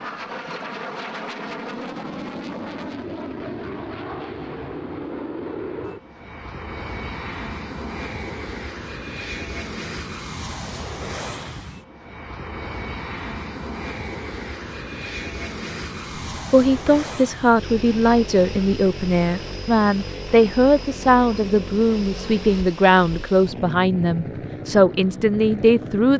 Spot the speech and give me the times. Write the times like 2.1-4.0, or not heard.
16.5-26.1.